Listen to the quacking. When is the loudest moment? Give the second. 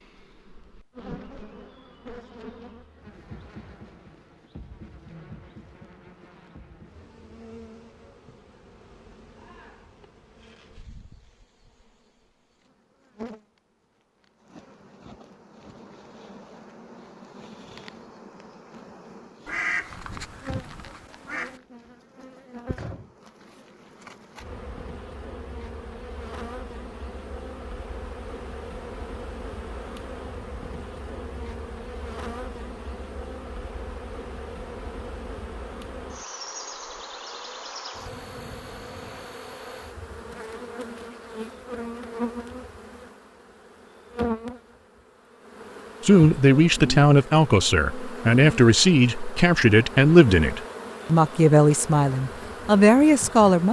20 s.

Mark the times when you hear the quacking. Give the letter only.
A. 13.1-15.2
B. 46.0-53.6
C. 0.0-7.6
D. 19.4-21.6
D.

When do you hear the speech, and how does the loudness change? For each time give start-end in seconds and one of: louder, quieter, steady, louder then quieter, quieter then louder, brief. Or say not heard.
46.0-53.6 steady.